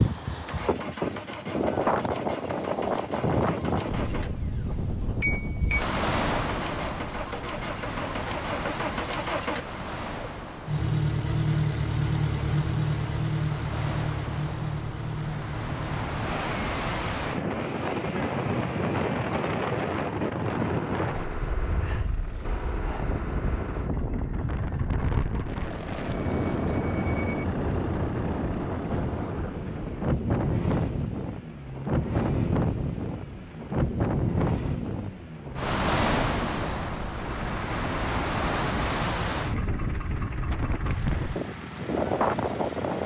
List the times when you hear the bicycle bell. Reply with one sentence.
You can hear the bicycle bell from 4.2 to 5.8 s and from 25.6 to 27.4 s.